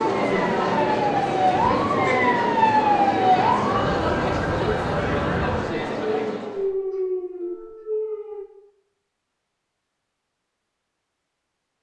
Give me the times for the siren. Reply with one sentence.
You can hear the siren from 0.1 to 8.4 s.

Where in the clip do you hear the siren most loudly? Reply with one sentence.
The volume of the siren peaks at 3 seconds.